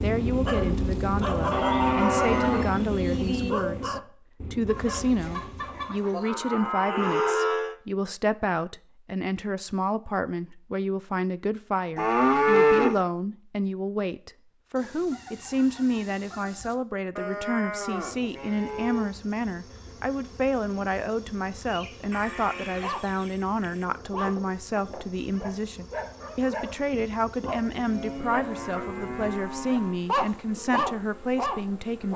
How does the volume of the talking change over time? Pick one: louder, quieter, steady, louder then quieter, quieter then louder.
steady.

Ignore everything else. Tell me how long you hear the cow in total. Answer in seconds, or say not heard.
11 s.